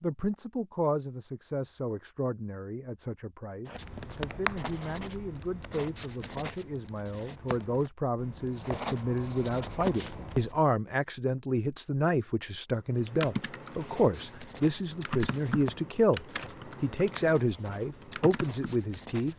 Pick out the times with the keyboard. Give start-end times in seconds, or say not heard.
12.9-18.8.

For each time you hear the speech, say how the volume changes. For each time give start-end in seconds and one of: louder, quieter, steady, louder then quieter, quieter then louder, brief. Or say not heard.
0.0-19.3 louder.